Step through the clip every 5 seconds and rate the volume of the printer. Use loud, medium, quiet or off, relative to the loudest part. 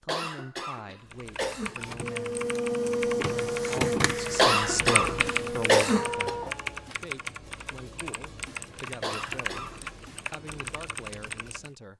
loud, medium, off.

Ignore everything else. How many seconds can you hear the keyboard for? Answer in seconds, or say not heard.
11 s.